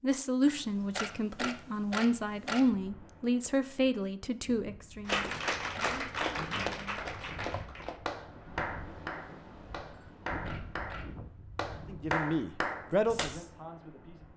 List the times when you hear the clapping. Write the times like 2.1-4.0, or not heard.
5.0-13.4.